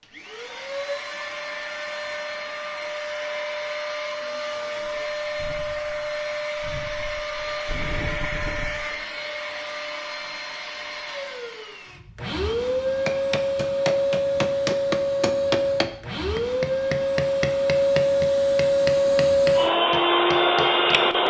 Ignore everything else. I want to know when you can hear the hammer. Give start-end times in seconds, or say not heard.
13.1-21.0.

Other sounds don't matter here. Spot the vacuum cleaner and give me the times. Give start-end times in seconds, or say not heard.
0.0-21.2.